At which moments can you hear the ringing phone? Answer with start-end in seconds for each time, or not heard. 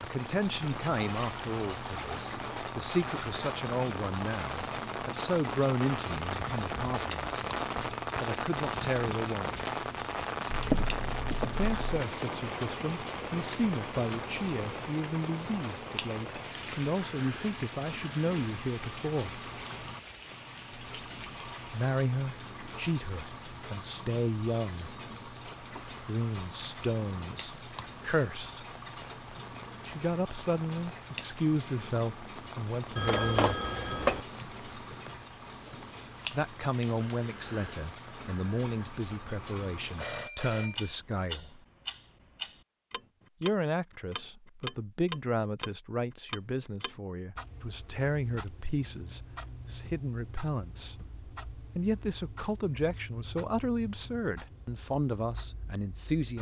10.5-12.0, 33.0-34.2, 40.0-41.0.